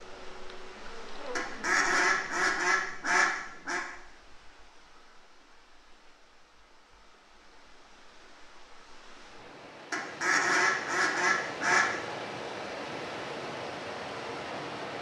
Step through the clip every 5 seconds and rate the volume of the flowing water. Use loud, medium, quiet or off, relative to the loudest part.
quiet, quiet, loud.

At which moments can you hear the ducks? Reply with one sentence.
The ducks can be heard from 1.4 to 3.8 s and from 9.9 to 11.8 s.